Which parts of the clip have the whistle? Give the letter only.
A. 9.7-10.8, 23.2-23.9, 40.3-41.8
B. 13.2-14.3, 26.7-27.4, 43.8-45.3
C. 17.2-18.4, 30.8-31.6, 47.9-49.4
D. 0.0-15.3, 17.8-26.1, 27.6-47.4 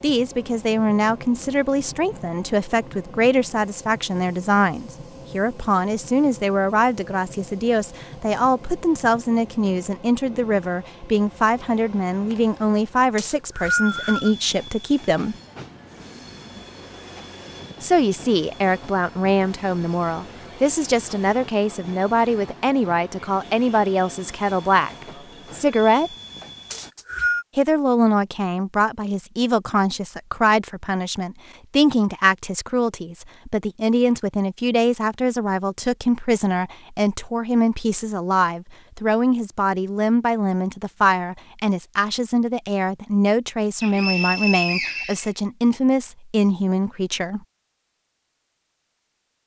B.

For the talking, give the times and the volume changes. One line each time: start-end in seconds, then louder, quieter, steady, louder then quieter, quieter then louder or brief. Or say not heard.
0.0-15.3 steady
17.8-26.1 steady
27.6-47.4 steady.